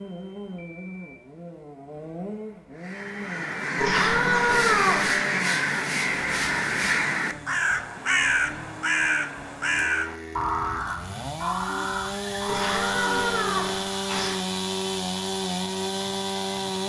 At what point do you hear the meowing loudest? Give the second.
5 s.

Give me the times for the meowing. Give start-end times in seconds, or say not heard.
3.8-5.2, 12.4-14.3.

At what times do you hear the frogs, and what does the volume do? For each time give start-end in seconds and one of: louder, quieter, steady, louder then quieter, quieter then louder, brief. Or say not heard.
not heard.